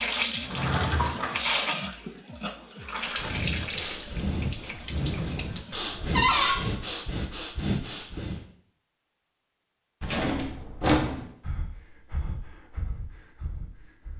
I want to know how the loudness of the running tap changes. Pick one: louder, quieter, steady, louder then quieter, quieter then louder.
quieter.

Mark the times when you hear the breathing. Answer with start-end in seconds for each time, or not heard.
3.0-8.4, 11.1-14.1.